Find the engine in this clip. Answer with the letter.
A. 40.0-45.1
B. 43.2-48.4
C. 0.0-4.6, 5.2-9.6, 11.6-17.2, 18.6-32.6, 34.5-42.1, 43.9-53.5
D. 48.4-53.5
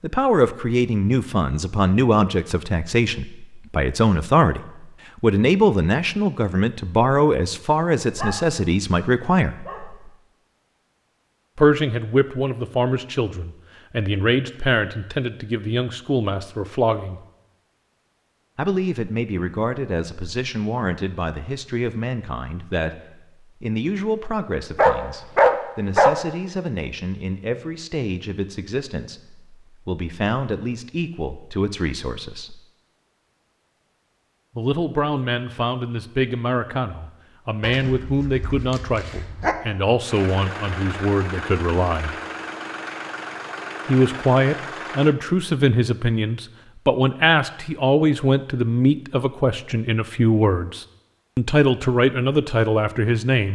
A.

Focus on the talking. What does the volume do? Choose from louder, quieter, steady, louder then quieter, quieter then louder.
quieter then louder.